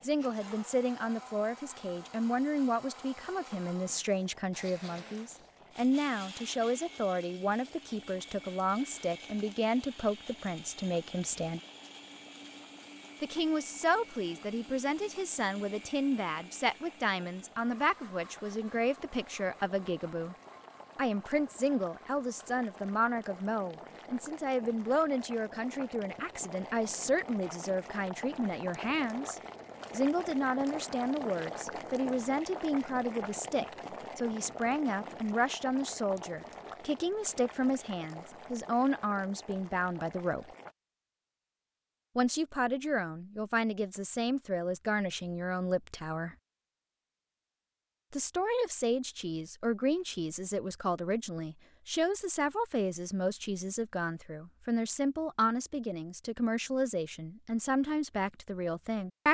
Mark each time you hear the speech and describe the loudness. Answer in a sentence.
You can hear the speech from 0.0 to 11.6 s, at a steady volume; from 13.2 to 20.4 s, at a steady volume; from 20.9 to 40.5 s, at a steady volume; from 42.1 to 46.4 s, at a steady volume; and from 48.1 to 59.3 s, at a steady volume.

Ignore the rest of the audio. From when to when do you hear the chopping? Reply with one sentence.
The chopping can't be heard in this clip.